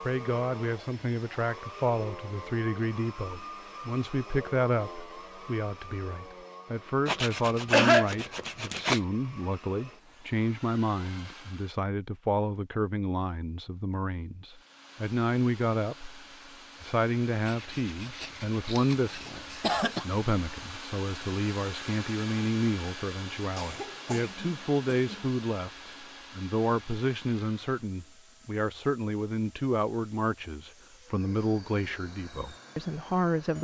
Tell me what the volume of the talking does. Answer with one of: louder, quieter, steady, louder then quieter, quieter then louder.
steady.